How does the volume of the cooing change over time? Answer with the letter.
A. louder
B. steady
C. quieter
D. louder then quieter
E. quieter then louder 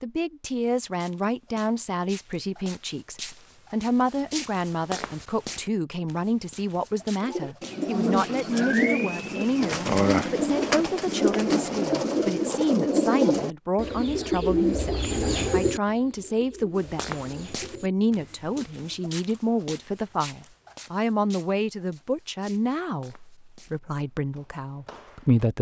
C.